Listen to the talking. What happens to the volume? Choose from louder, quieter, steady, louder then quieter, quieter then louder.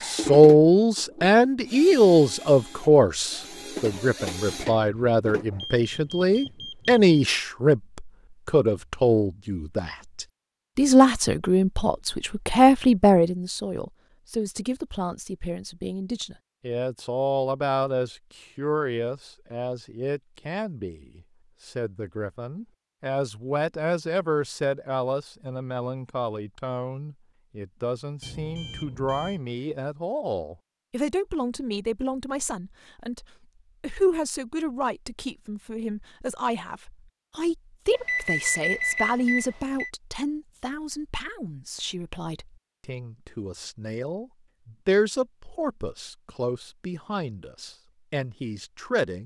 quieter.